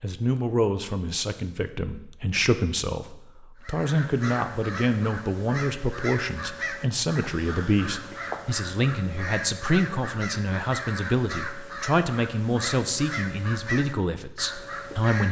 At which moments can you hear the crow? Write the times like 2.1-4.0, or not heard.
3.6-15.2.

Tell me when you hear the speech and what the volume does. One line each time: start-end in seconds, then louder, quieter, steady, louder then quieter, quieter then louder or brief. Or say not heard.
0.0-15.2 steady.